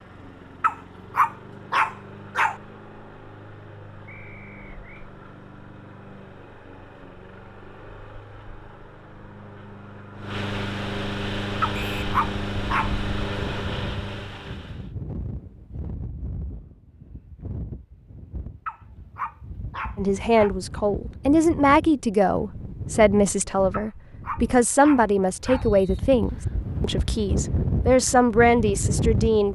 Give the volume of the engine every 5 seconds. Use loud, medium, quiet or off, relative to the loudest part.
quiet, quiet, loud, off, off, off.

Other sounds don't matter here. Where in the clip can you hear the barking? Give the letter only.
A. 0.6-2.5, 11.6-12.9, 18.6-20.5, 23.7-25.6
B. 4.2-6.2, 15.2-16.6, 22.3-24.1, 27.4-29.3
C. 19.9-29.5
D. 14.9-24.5
A.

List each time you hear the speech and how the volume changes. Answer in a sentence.
You can hear the speech from 19.9 to 29.5 s, at a steady volume.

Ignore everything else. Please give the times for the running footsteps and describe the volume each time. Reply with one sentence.
You can't hear the running footsteps here.